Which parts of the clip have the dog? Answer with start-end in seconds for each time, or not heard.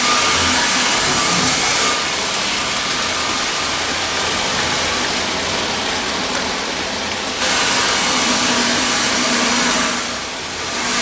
not heard.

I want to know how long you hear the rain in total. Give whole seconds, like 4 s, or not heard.
11 s.